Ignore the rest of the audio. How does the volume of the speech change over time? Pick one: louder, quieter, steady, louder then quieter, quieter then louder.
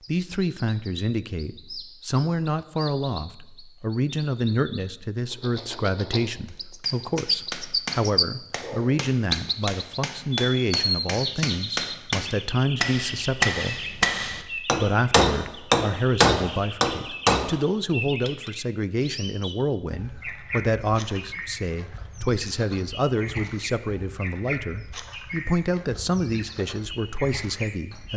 steady.